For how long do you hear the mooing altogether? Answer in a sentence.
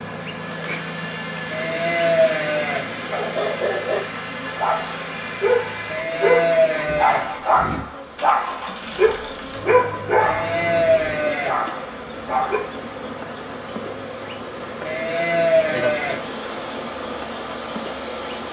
The mooing can be heard for 6 seconds in total.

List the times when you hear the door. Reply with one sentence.
You can't hear the door here.